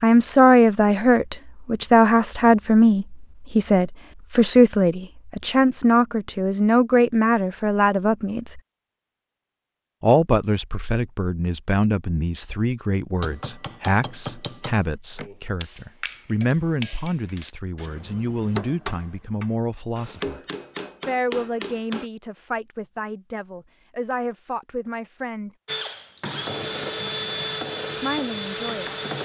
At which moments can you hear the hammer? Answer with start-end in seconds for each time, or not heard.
13.2-22.1.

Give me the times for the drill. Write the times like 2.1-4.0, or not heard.
25.6-29.1.